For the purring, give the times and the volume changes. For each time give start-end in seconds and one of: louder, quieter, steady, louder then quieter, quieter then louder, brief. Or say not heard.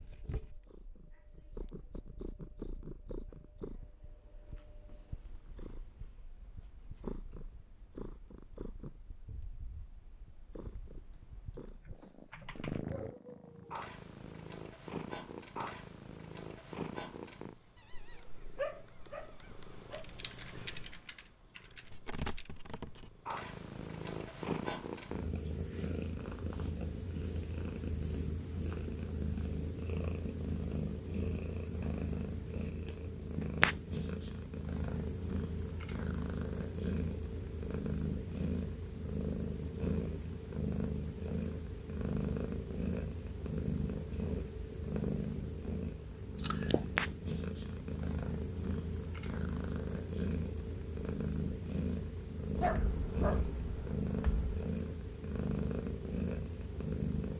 0.0-57.3 louder.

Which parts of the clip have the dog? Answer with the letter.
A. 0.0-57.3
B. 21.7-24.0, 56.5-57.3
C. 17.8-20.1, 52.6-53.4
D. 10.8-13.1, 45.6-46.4
C.